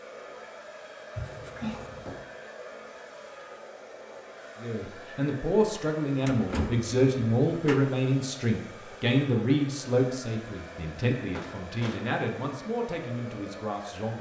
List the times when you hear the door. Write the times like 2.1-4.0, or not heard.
1.1-2.2, 6.2-7.8, 11.3-12.1.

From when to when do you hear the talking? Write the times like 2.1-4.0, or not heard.
4.5-14.1.